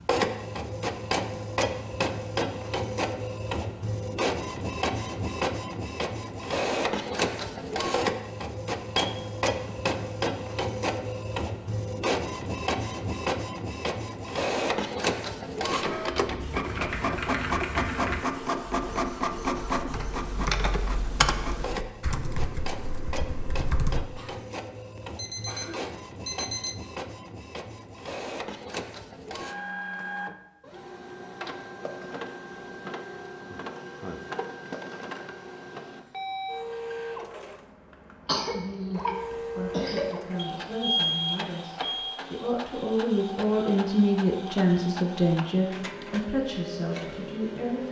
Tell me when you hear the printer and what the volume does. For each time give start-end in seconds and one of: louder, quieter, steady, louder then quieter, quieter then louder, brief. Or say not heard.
0.0-47.8 quieter.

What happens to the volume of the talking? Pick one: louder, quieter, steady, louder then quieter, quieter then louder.
louder then quieter.